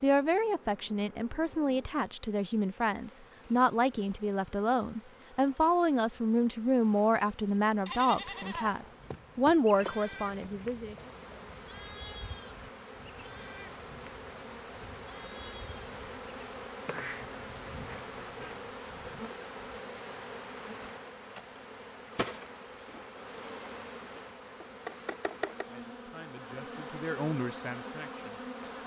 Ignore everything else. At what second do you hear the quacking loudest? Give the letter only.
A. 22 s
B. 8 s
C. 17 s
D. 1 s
C.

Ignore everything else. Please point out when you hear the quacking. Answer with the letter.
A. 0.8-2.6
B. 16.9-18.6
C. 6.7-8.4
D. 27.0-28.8
B.